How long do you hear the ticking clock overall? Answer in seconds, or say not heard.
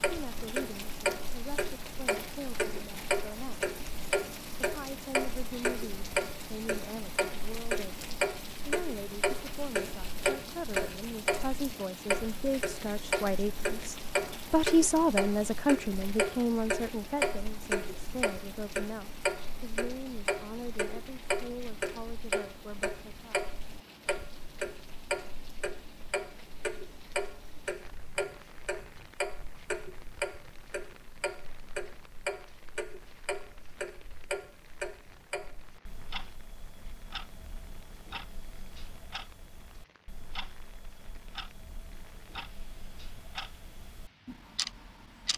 45 s.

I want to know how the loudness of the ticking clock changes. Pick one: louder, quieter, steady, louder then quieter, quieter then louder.
quieter.